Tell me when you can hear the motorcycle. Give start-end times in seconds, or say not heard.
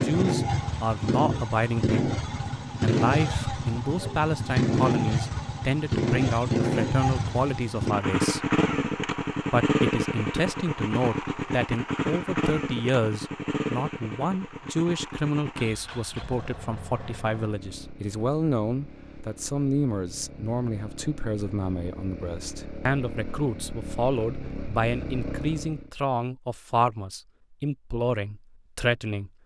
0.0-25.9.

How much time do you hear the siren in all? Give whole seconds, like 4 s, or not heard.
not heard.